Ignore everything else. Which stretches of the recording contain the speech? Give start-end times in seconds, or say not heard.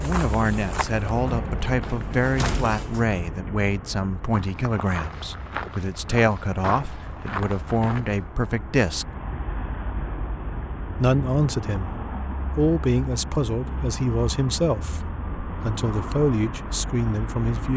0.0-9.1, 10.9-11.9, 12.6-17.7.